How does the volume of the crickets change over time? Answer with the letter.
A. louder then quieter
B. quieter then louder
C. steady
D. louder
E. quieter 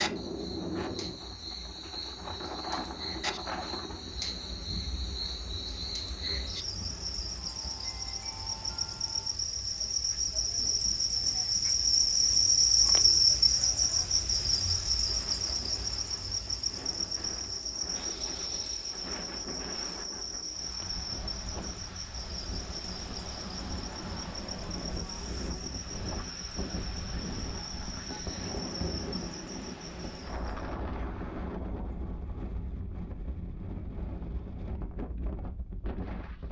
A.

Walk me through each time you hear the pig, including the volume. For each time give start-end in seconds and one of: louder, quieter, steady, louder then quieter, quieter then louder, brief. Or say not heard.
not heard.